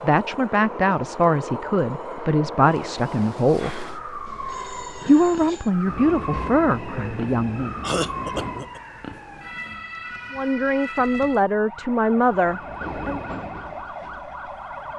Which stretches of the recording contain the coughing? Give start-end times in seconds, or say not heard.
6.9-8.8.